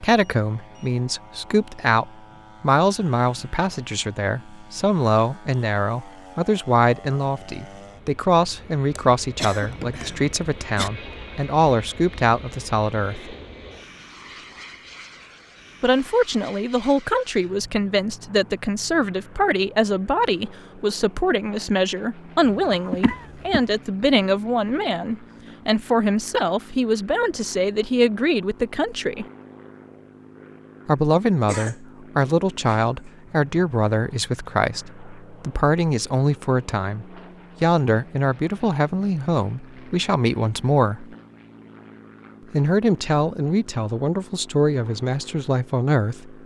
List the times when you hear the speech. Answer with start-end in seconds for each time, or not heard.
0.0-13.3, 15.8-29.2, 30.9-41.1, 42.5-46.4.